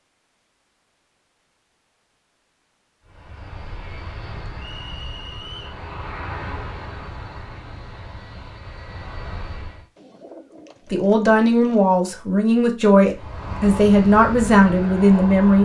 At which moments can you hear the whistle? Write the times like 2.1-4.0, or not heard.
4.5-5.8.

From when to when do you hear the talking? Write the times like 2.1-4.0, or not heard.
10.9-15.6.